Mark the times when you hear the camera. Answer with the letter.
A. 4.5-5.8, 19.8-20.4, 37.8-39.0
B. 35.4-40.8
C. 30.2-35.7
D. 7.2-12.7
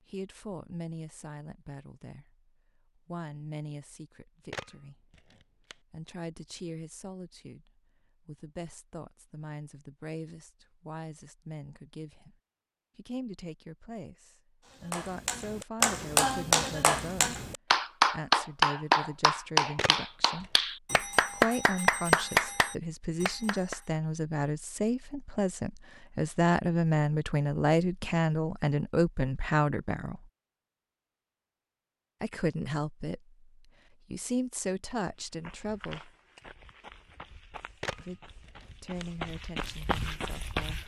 A.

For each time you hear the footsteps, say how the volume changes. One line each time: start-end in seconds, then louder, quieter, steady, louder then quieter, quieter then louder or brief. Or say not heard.
35.4-40.8 quieter then louder.